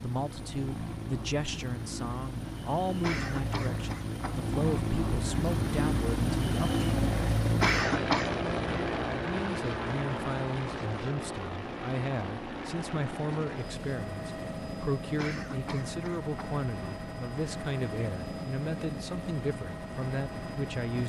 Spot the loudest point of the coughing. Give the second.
8 s.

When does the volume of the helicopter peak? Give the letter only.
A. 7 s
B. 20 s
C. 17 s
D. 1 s
A.